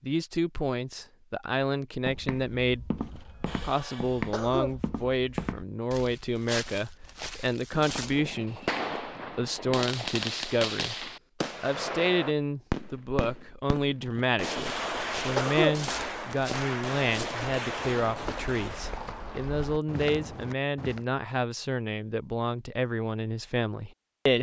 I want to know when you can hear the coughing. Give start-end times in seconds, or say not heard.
3.0-4.8, 14.0-15.8.